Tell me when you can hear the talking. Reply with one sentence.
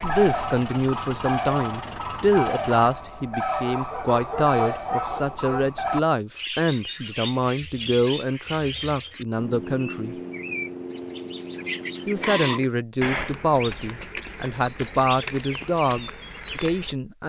You can hear the talking from 0.0 to 10.2 s and from 12.1 to 17.2 s.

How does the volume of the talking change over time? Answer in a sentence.
The loudness of the talking stays about the same.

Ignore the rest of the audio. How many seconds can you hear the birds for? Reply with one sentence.
You can hear the birds for 17 seconds altogether.